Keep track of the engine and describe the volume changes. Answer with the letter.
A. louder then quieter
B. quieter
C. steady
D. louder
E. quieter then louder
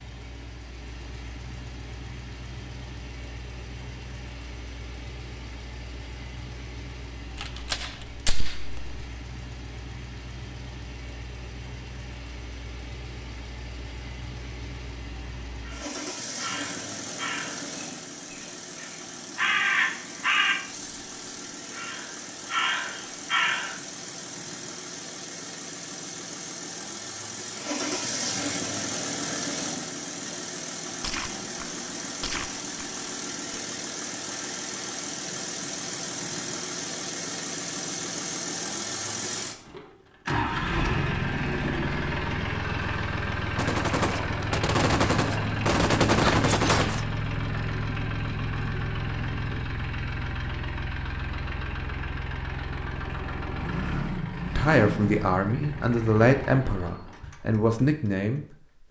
D.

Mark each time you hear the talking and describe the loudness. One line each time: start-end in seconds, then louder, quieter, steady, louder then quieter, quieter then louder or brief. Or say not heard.
54.5-58.8 steady.